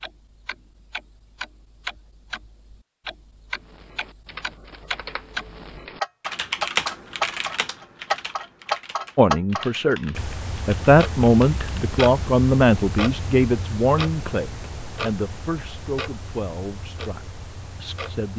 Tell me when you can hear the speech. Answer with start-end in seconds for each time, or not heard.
9.2-18.3.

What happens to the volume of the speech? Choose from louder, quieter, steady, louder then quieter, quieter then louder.
quieter.